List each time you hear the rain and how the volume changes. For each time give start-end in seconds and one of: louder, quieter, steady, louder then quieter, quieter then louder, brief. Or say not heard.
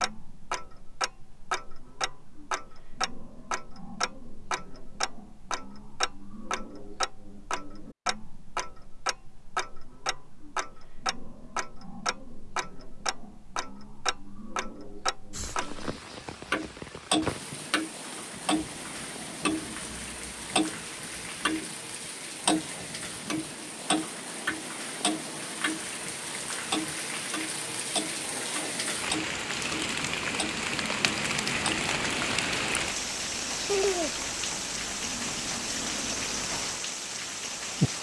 15.3-37.9 louder.